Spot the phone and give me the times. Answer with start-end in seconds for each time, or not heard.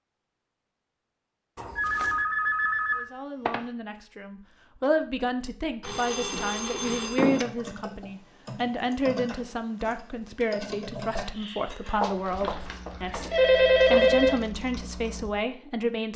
1.8-3.6, 5.8-7.5, 12.0-14.4.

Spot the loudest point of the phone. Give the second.
14 s.